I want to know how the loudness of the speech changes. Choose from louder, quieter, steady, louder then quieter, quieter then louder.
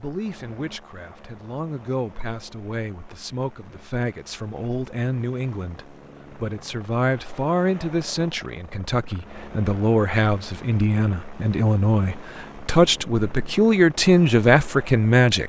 louder.